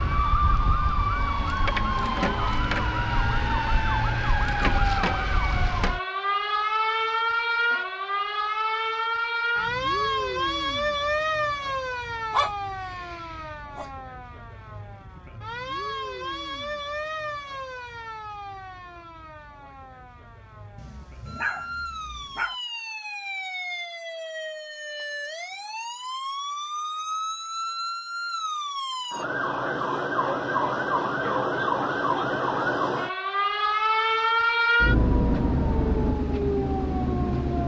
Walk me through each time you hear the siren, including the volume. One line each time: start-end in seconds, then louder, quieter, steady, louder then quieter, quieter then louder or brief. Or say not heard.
0.0-37.6 quieter then louder.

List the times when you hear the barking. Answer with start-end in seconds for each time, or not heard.
12.3-13.9, 20.8-22.6.